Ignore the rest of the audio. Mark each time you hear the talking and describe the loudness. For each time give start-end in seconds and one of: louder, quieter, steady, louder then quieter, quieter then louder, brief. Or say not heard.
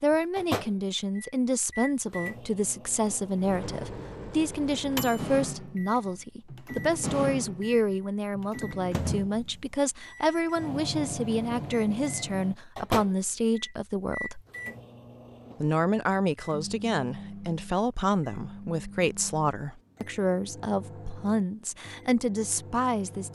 0.0-14.4 steady
15.6-23.2 steady.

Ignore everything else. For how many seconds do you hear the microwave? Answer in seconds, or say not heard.
23 s.